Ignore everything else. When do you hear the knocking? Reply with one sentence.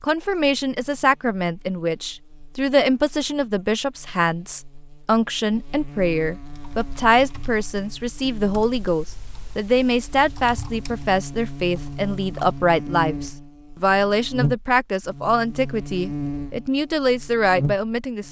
You can't hear the knocking here.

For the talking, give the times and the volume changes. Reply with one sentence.
The talking can be heard from 0.0 to 18.2 s, at a steady volume.